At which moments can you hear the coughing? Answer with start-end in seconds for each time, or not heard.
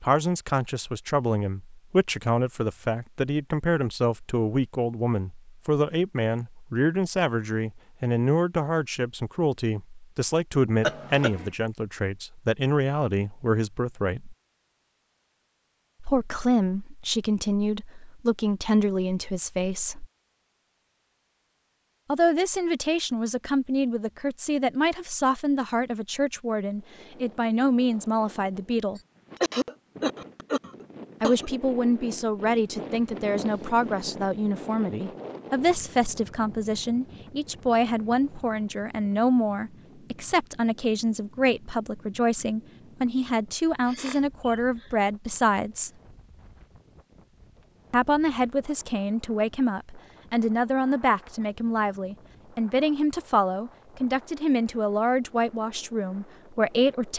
10.8-11.5, 28.9-31.5, 43.9-45.0.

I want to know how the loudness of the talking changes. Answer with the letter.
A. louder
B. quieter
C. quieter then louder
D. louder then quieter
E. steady
E.